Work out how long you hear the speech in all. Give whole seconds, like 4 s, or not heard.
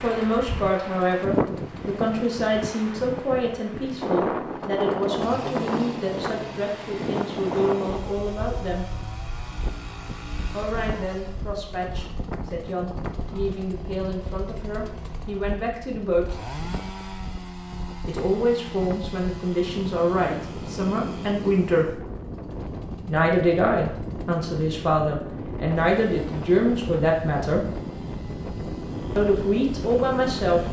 25 s.